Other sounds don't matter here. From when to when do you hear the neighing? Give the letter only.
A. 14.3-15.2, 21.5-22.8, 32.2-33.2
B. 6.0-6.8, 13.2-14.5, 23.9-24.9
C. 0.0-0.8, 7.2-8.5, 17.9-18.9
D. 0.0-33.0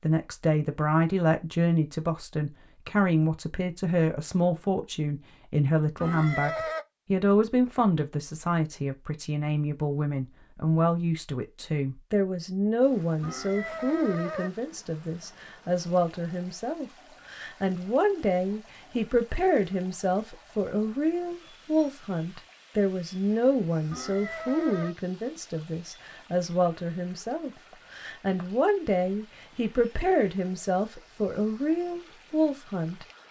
B.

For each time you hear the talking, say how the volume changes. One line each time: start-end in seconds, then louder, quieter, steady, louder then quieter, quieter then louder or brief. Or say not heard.
0.0-33.0 steady.